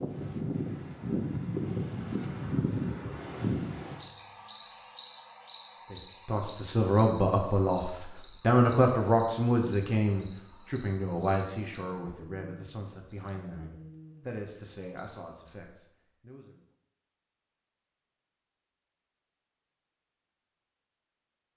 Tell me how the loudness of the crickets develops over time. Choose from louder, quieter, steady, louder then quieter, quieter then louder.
quieter.